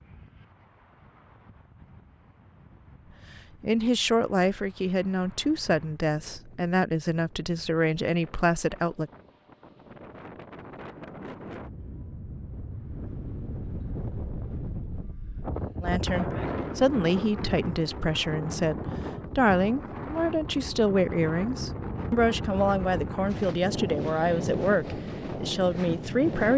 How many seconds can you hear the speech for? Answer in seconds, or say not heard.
16 s.